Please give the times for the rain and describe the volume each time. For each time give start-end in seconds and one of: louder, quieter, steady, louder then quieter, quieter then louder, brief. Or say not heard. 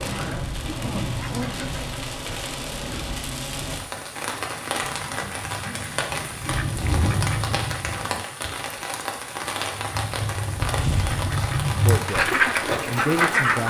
0.0-13.6 steady.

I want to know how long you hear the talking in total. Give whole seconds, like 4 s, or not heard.
2 s.